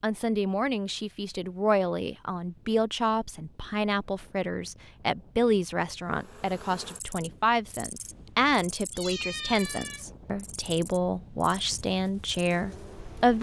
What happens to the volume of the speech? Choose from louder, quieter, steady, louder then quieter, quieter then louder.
steady.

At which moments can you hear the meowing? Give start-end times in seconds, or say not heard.
8.9-10.1.